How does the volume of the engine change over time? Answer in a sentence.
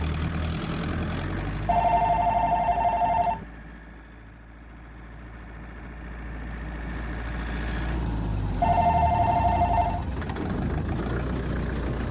The loudness of the engine goes down, then up.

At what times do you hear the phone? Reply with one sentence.
The phone can be heard from 1.6 to 3.5 s and from 8.6 to 10.0 s.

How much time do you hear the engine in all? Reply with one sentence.
You can hear the engine for 12 seconds altogether.